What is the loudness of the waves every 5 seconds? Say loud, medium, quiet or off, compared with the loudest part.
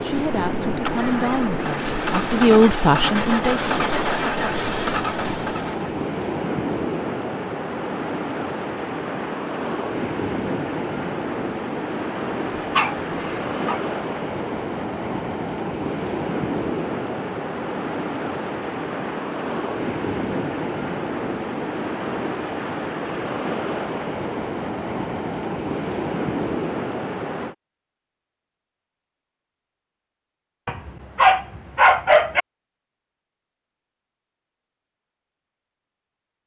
loud, loud, loud, loud, loud, loud, off, off.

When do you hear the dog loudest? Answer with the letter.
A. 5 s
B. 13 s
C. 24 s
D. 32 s
D.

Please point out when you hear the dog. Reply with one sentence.
You can hear the dog from 12.4 to 13.8 s and from 30.6 to 32.4 s.